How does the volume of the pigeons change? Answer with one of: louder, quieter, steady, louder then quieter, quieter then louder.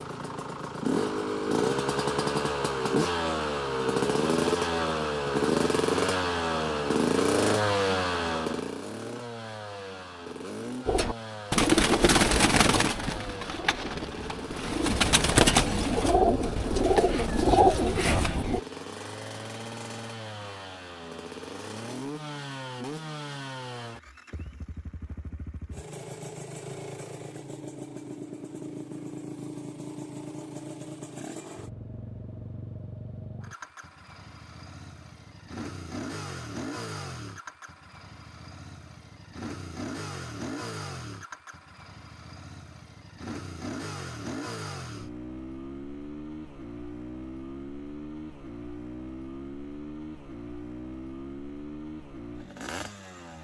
quieter then louder.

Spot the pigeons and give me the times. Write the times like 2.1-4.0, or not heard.
10.8-18.6.